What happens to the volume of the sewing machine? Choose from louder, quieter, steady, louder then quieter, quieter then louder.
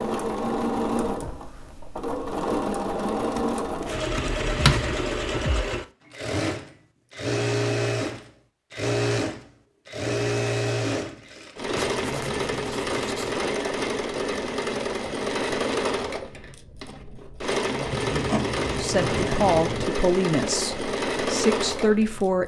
steady.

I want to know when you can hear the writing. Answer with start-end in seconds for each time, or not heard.
3.4-5.0, 11.8-13.3, 17.9-19.9.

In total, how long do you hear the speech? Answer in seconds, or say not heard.
4 s.